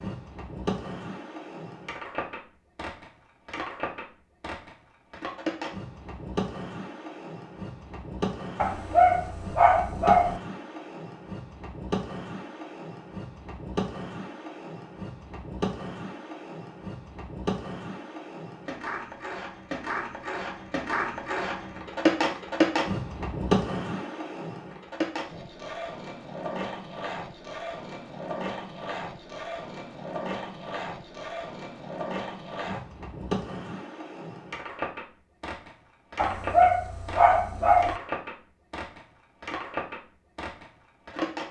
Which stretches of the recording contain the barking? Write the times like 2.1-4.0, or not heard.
8.6-10.4, 36.1-38.0.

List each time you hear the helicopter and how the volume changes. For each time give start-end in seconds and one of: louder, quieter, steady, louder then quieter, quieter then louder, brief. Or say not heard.
not heard.